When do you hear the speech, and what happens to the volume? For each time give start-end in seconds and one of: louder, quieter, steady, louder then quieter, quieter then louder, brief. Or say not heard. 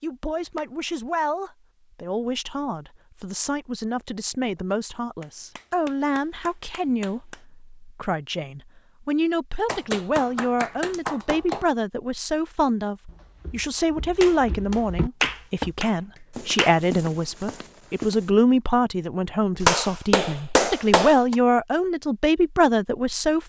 0.0-23.4 louder.